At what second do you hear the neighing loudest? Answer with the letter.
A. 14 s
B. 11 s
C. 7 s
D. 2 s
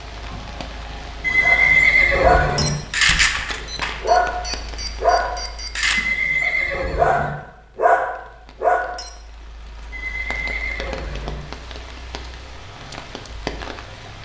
D.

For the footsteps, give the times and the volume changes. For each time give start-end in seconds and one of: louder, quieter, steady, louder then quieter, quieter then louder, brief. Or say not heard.
not heard.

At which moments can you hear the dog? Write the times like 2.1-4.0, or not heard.
1.4-9.1.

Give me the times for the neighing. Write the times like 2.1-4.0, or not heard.
1.2-2.8, 5.8-7.3, 9.9-11.4.